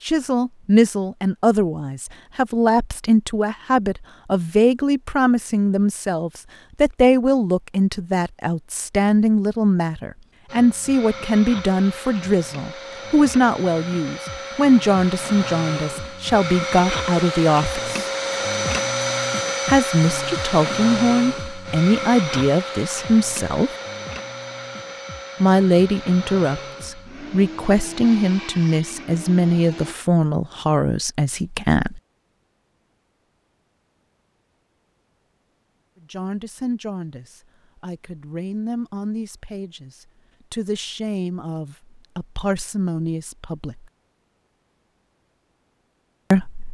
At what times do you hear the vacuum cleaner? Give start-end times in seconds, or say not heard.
10.4-29.9.